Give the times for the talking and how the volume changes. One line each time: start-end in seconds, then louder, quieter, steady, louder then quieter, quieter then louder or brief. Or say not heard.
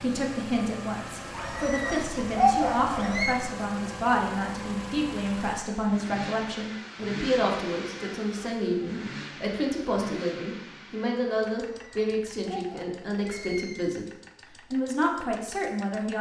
0.0-14.1 steady
14.7-16.1 brief.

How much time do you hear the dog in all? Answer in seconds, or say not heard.
4 s.